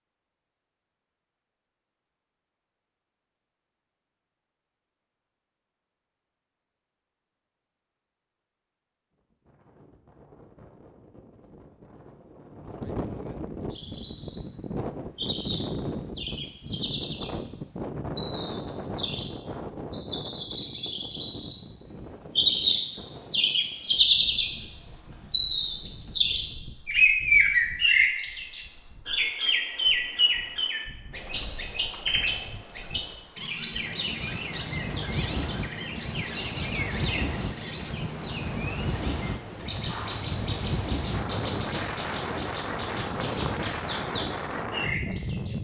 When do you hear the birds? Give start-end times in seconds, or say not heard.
13.7-45.5.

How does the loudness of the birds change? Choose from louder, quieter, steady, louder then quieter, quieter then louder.
louder then quieter.